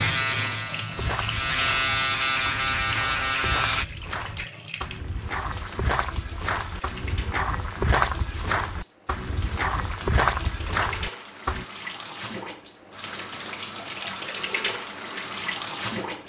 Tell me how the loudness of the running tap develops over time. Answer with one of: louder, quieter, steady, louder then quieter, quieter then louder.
quieter then louder.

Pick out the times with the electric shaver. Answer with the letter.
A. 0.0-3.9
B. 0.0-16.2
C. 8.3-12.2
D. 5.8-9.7
A.